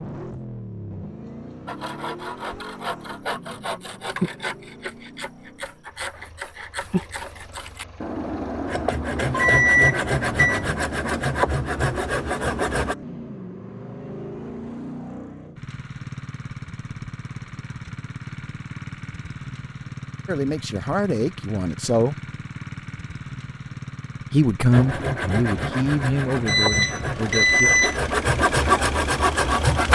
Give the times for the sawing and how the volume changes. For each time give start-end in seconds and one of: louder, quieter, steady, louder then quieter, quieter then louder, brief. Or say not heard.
1.6-12.9 louder
24.7-29.9 louder.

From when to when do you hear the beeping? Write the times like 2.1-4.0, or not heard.
9.3-10.7, 26.4-28.0.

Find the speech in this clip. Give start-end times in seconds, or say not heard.
20.2-22.1, 24.3-27.7.